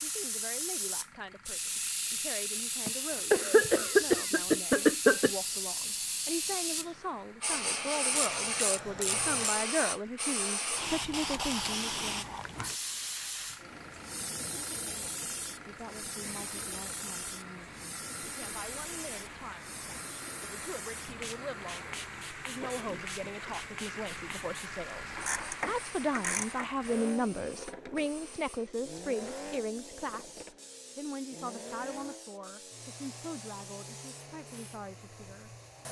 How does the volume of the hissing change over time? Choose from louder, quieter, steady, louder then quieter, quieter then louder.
quieter.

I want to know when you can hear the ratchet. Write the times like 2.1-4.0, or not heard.
8.1-9.6, 25.1-26.7.